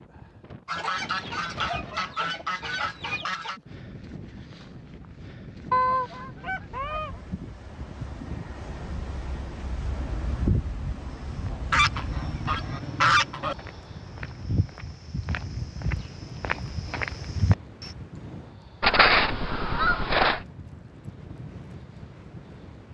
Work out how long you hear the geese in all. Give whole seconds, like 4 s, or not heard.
8 s.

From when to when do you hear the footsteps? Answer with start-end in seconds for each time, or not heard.
11.1-17.9.